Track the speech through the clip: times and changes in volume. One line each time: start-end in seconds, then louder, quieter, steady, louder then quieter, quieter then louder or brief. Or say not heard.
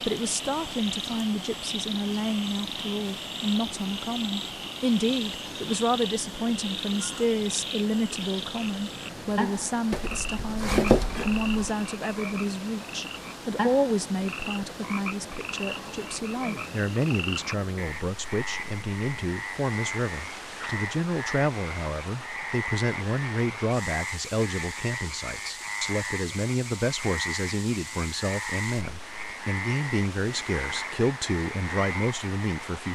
0.0-32.9 steady.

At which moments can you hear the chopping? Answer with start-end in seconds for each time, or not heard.
9.9-11.5.